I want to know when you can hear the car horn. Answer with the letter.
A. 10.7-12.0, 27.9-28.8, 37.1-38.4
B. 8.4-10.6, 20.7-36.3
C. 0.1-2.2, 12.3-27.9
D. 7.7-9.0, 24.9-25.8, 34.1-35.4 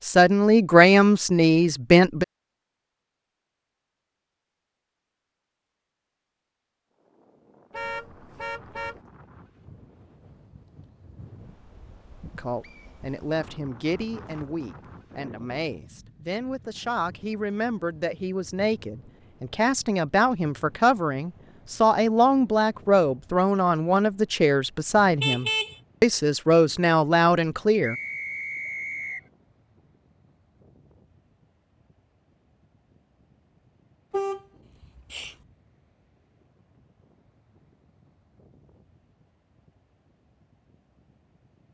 D.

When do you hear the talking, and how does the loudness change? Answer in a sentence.
You can hear the talking briefly from 0.1 to 2.2 s; and from 12.3 to 27.9 s, getting louder.